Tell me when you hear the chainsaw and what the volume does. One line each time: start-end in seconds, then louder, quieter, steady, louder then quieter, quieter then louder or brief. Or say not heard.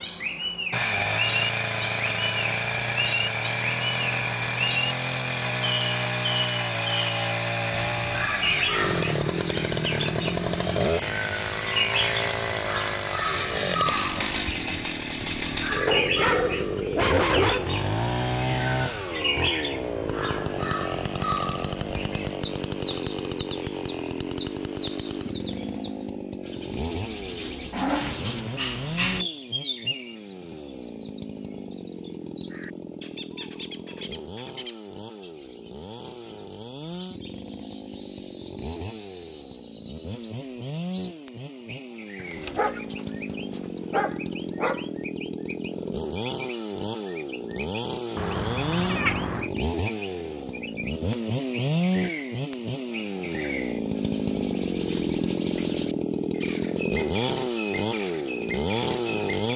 0.0-59.5 quieter then louder.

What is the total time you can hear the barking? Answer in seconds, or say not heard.
6 s.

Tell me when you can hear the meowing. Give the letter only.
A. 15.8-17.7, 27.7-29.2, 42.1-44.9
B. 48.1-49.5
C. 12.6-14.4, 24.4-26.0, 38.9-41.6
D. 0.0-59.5
B.